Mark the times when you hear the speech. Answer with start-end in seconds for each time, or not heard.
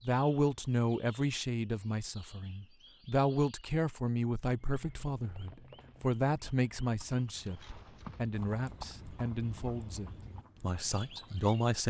0.0-11.8.